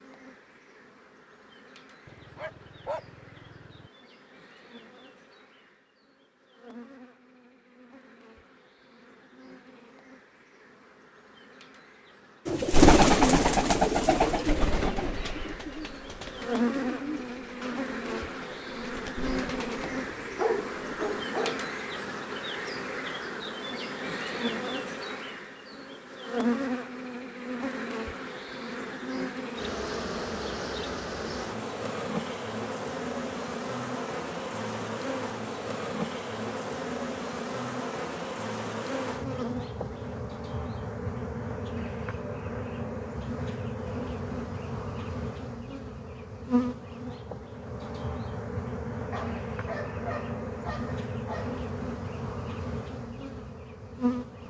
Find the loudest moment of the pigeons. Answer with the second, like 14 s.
13 s.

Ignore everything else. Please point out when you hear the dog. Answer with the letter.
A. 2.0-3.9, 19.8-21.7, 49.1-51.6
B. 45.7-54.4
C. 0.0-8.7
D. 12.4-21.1
A.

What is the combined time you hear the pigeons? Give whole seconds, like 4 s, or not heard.
9 s.